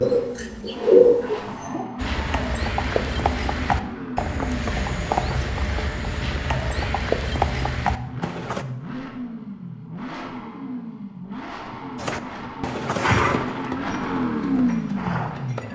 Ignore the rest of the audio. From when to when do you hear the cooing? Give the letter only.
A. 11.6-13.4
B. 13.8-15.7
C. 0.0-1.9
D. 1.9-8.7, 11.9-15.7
C.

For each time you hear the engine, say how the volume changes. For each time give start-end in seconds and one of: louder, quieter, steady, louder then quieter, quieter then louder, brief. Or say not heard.
0.0-15.7 louder.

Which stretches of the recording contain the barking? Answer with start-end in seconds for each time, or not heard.
not heard.